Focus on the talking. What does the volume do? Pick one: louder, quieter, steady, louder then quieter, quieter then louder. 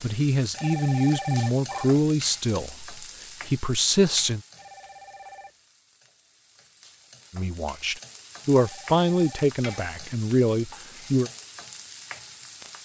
steady.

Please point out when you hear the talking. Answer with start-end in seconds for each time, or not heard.
0.0-4.4, 7.3-11.3.